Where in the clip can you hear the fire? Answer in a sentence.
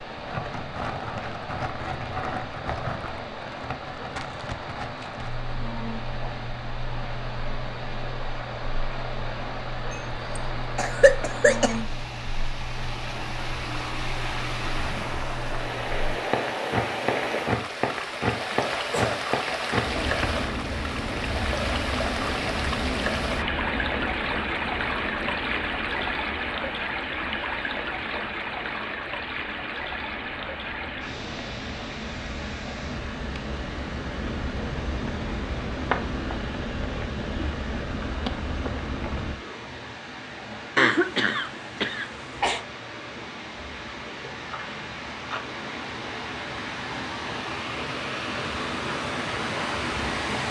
You can hear the fire from 0.0 to 39.4 s.